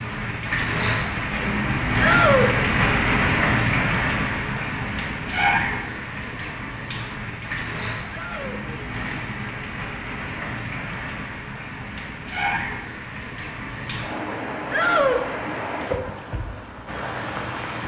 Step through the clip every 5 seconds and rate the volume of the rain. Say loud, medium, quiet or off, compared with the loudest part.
loud, medium, medium, medium.